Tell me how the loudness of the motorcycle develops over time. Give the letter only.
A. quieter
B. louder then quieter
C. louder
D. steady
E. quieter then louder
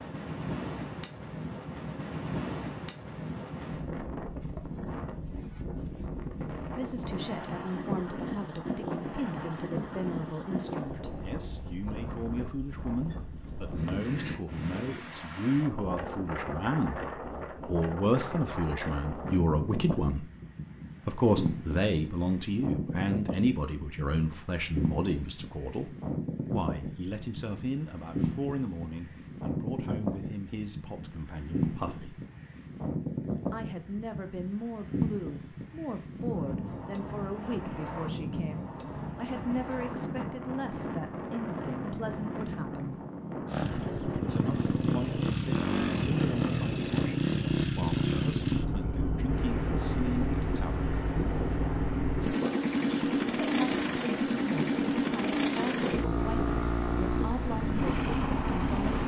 D.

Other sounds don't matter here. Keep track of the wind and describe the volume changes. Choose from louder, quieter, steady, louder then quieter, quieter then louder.
steady.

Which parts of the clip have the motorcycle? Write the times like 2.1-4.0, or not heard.
43.5-59.0.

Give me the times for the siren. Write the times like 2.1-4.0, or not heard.
not heard.